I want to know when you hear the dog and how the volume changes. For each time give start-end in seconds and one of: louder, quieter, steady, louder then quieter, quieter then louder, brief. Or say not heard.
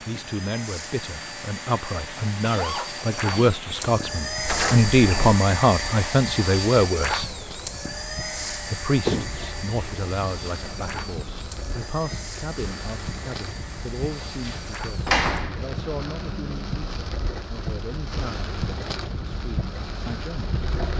not heard.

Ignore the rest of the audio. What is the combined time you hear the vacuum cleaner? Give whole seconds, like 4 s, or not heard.
15 s.